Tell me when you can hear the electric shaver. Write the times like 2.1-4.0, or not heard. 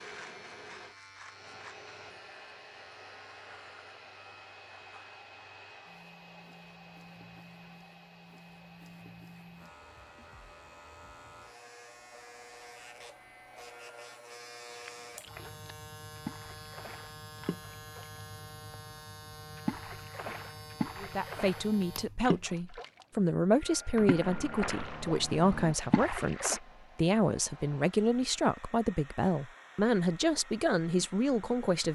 0.0-22.4.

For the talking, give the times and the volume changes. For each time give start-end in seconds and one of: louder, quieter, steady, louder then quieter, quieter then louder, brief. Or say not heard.
21.0-31.9 steady.